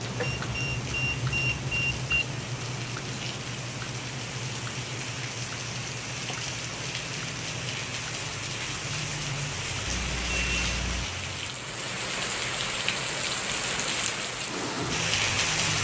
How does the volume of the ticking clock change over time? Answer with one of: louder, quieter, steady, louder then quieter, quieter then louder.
quieter.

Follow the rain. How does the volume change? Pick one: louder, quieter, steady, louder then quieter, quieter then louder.
louder.